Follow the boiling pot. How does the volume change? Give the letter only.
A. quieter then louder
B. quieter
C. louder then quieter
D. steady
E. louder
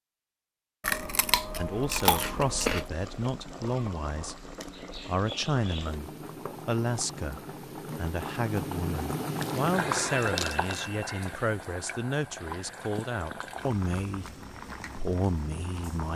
C.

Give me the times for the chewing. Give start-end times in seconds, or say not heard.
0.8-2.9, 9.2-10.8.